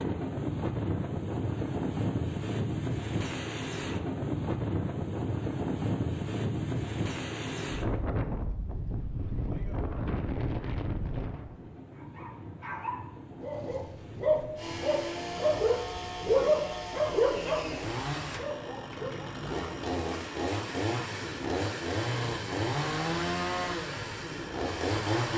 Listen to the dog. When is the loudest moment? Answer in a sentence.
The volume of the dog peaks at 16 seconds.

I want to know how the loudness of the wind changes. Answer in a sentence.
The volume of the wind goes down.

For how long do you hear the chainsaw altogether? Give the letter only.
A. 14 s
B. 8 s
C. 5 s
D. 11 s
D.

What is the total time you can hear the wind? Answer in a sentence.
The wind can be heard for 25 seconds in total.